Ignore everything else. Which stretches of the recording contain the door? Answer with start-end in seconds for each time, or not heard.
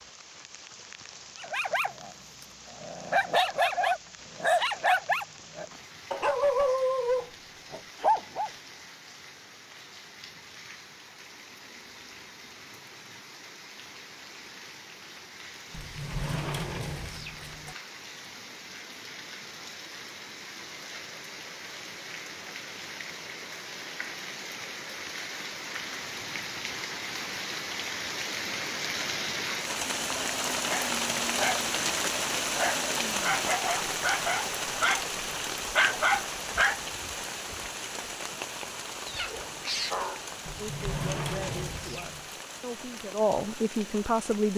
15.7-17.8, 40.5-42.3.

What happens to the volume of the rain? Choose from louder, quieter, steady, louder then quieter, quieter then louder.
louder then quieter.